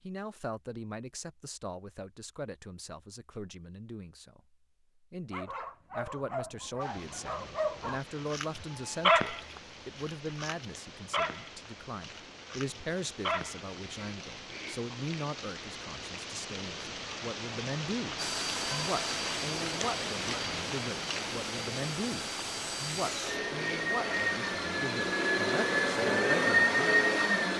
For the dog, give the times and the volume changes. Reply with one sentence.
You can hear the dog from 5.3 to 13.8 s, getting louder then quieter.